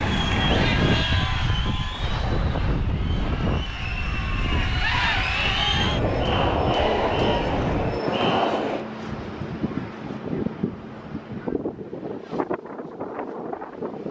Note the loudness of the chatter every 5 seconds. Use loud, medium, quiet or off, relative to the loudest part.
medium, loud, off.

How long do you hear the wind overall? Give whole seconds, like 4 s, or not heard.
14 s.